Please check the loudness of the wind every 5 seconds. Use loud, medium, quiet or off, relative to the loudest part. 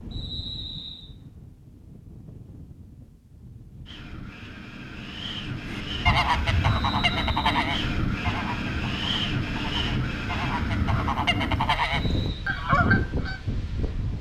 quiet, loud, loud.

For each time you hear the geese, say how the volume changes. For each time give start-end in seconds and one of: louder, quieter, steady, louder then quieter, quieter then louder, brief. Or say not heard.
5.7-13.4 quieter then louder.